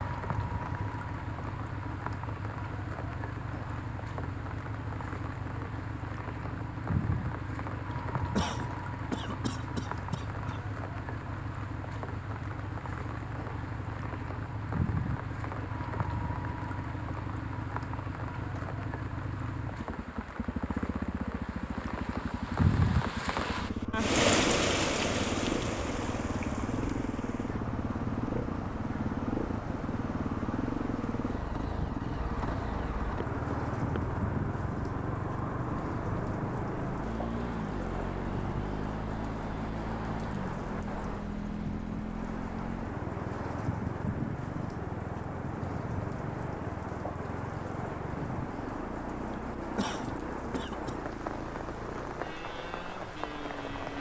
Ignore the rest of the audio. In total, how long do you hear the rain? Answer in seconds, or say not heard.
54 s.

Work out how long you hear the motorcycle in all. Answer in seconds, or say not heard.
54 s.